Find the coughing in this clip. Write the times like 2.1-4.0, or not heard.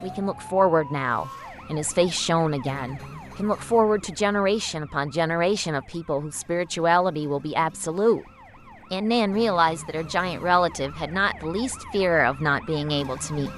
not heard.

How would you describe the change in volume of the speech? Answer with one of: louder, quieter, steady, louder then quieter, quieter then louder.
steady.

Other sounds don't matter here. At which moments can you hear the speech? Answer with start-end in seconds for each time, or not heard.
0.0-8.2, 8.9-13.5.